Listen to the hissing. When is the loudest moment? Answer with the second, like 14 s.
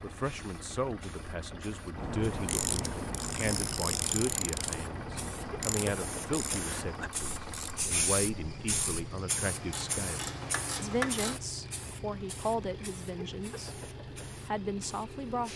8 s.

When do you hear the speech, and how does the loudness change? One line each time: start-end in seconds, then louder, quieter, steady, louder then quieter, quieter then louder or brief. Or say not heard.
0.0-15.5 steady.